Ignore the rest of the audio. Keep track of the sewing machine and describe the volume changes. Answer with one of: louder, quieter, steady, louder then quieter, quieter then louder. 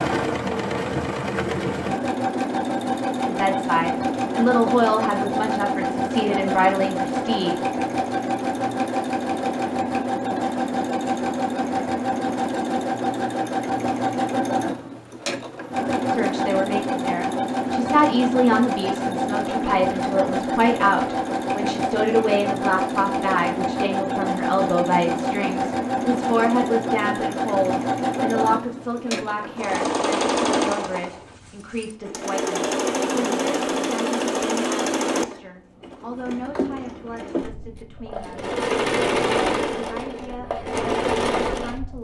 steady.